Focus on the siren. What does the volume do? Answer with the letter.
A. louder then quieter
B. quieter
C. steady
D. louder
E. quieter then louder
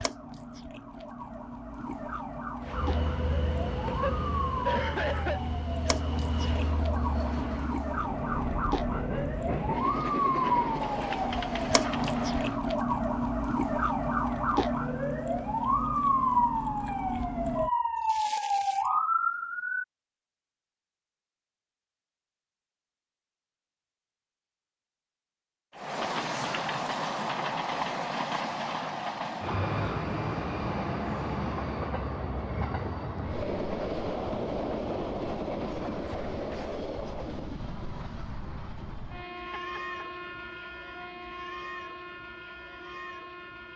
D.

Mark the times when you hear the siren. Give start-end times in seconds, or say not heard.
0.0-19.9.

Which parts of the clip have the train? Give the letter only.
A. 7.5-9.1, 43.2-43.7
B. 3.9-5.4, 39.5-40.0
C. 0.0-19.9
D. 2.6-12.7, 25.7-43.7
D.